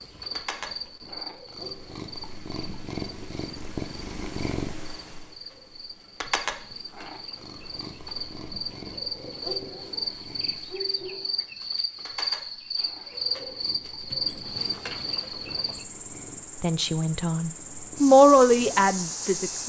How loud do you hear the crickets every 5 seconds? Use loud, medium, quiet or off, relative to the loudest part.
medium, medium, loud, loud.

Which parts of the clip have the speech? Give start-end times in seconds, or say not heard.
16.6-19.6.